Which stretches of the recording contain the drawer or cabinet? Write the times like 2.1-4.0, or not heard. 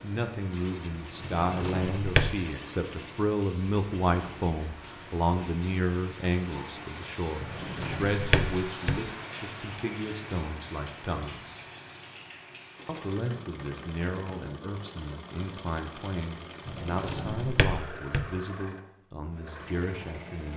1.2-2.4, 7.4-9.1, 16.6-18.3.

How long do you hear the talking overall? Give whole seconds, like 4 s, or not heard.
19 s.